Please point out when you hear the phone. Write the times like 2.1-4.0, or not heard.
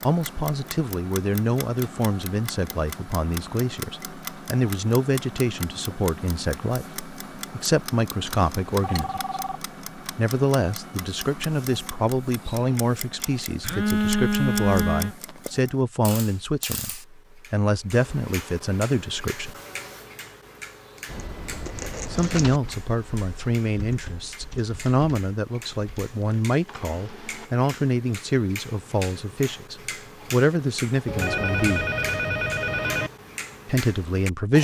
8.2-9.6, 13.6-15.2, 31.1-33.1.